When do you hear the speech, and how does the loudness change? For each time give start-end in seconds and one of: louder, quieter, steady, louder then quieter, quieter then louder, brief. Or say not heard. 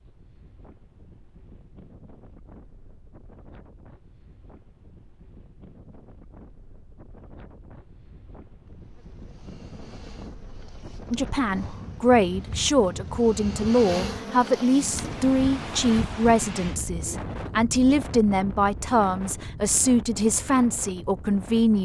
11.1-21.8 steady.